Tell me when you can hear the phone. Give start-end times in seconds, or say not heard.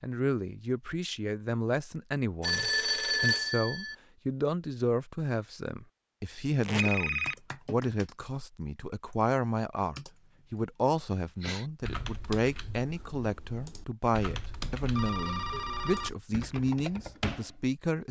2.4-4.0, 6.8-7.3, 14.6-16.1.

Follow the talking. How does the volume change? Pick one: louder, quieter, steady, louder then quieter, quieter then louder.
steady.